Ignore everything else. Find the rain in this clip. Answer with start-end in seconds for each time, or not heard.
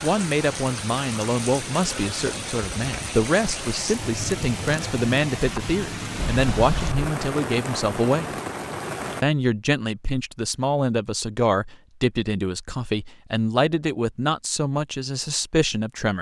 0.0-9.2.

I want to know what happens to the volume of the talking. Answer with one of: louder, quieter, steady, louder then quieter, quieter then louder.
steady.